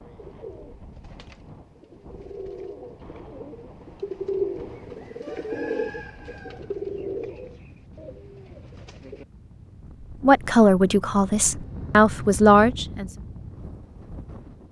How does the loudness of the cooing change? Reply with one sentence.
The loudness of the cooing goes up, then down.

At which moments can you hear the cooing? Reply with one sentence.
You can hear the cooing from 0.1 to 9.2 s.